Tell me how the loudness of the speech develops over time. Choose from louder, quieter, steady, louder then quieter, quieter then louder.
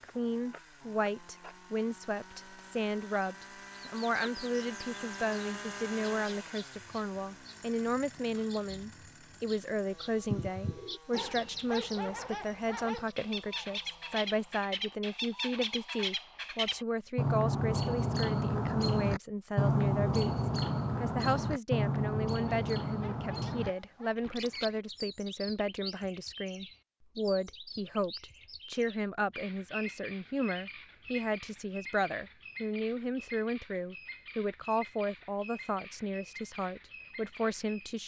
steady.